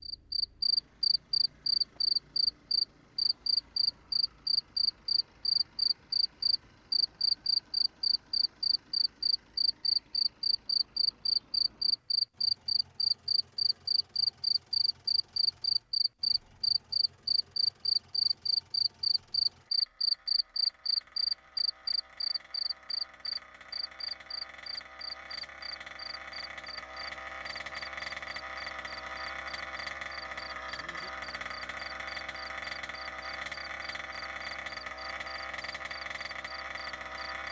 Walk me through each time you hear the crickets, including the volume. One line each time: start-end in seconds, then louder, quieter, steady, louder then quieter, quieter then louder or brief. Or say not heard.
0.0-37.4 quieter.